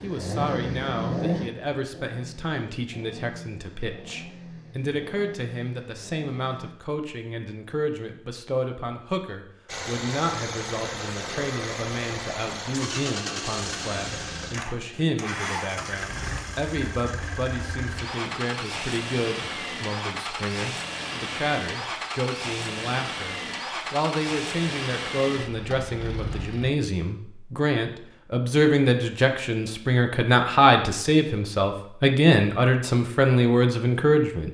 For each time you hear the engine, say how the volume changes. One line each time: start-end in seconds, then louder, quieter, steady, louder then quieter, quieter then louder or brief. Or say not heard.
0.0-6.8 quieter
9.7-26.8 steady.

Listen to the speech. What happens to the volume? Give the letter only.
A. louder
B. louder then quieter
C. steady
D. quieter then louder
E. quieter
A.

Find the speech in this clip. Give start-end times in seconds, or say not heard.
0.0-34.4.